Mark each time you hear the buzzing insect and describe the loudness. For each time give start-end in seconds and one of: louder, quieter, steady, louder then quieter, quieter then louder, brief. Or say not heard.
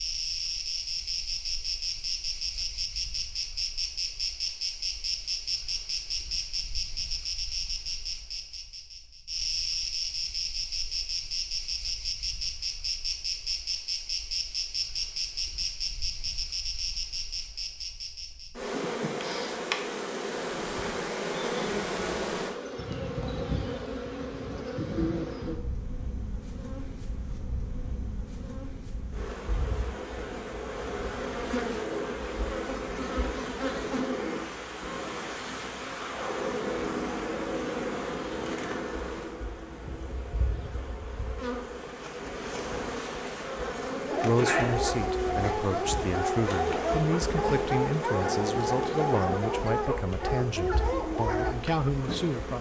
0.0-52.5 steady.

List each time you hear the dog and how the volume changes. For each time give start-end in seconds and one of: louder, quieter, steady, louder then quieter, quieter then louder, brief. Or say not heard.
44.0-51.5 steady.